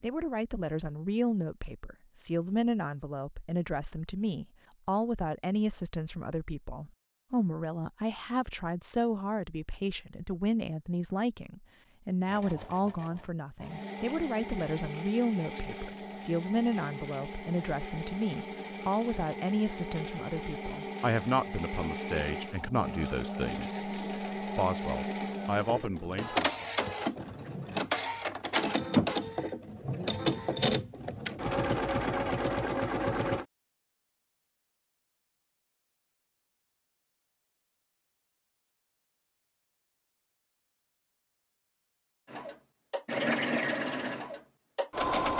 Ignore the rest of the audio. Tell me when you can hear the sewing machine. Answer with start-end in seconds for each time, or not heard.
12.2-33.5, 42.2-45.3.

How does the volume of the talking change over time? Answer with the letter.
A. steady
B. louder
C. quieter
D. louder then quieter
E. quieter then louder
A.